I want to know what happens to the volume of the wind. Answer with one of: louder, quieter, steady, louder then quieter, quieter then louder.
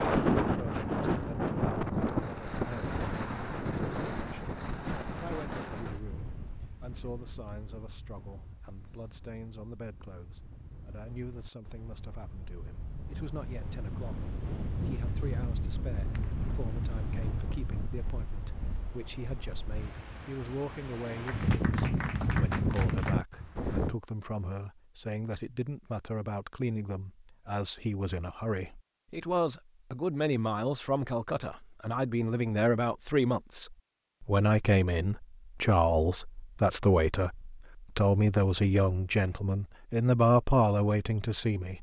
quieter then louder.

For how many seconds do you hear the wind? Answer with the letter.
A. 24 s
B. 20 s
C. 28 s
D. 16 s
A.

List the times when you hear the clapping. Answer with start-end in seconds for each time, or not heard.
21.2-23.1.